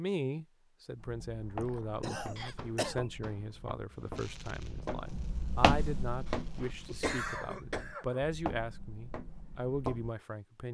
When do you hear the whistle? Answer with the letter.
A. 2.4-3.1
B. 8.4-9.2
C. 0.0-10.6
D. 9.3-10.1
A.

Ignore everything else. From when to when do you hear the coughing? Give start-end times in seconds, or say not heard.
1.2-3.1, 6.2-8.2.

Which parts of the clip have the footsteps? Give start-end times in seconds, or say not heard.
0.9-10.1.